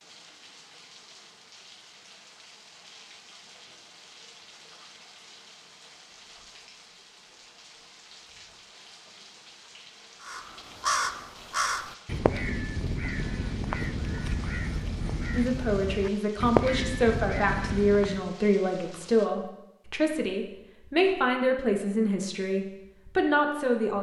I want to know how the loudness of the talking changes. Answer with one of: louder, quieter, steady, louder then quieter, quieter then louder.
steady.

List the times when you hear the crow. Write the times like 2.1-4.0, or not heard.
10.2-18.3.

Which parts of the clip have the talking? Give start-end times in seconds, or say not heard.
15.3-23.9.